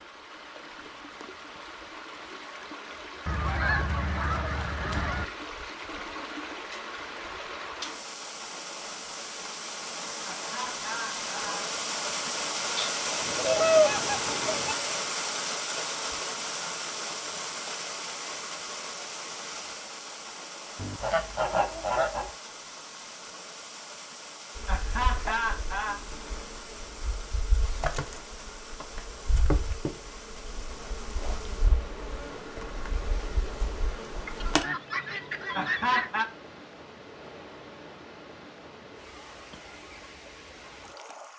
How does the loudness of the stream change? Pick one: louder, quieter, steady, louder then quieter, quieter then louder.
louder then quieter.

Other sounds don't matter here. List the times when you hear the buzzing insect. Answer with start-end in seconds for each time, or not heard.
24.6-34.6.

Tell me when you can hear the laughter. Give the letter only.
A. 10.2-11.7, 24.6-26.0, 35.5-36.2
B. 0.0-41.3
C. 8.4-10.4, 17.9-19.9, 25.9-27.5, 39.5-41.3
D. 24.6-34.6
A.